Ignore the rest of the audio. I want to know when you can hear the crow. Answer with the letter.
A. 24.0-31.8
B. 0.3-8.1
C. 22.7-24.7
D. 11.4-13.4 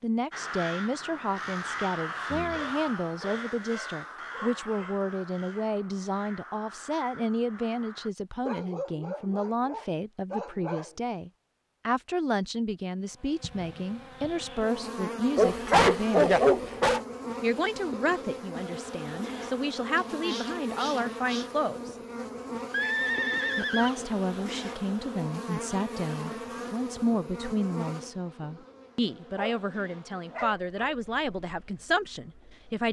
B.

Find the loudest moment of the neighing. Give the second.
23 s.